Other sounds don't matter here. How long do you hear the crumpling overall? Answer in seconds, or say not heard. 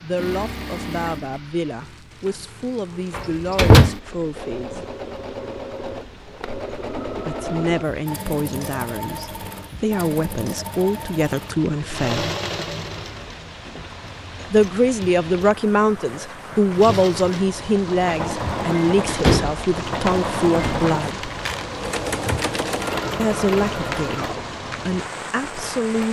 2 s.